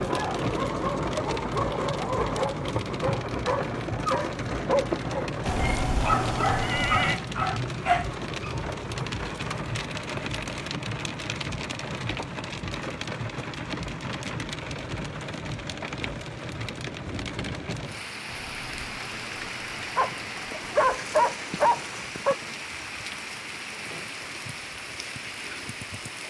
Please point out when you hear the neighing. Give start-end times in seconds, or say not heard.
5.5-7.2, 18.2-20.9.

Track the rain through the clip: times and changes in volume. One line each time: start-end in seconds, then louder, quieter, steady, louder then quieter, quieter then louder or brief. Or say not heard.
0.0-26.2 quieter.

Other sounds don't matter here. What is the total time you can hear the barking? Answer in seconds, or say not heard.
11 s.